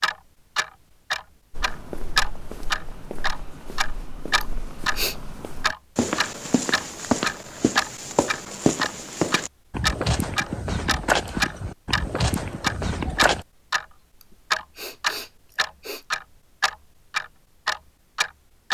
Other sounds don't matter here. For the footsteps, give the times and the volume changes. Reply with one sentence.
The footsteps can be heard from 1.5 to 13.4 s, getting louder.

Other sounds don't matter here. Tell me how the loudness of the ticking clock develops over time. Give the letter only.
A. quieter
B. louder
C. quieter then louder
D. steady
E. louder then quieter
D.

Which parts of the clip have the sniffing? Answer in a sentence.
The sniffing can be heard from 4.4 to 5.2 s and from 14.2 to 16.1 s.